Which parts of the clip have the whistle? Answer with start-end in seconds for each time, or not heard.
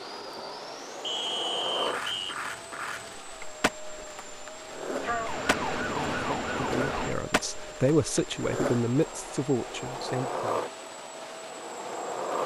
1.0-2.4.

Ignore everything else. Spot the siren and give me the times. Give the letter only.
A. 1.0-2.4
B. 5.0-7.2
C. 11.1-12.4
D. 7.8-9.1
B.